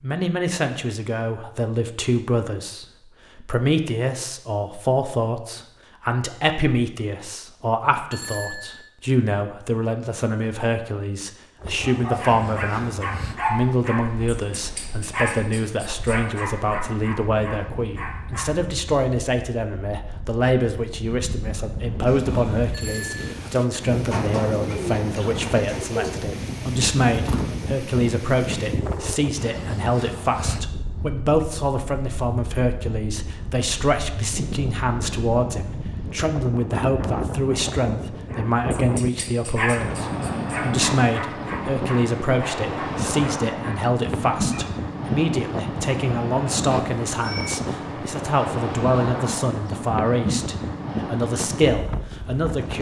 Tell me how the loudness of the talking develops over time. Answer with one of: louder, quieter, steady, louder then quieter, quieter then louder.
steady.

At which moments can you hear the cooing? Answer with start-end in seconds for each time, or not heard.
22.1-27.5.